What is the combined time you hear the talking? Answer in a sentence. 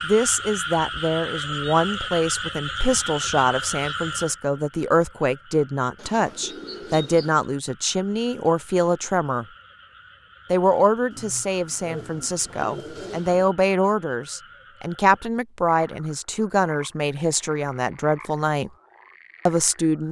You can hear the talking for 18 seconds altogether.